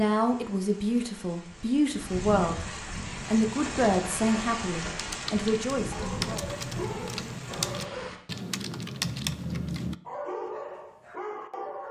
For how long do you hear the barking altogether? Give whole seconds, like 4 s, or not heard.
4 s.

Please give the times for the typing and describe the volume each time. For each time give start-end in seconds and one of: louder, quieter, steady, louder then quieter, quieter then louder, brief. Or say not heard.
3.0-9.9 louder.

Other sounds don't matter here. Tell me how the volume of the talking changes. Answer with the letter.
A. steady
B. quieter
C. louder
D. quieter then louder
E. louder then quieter
A.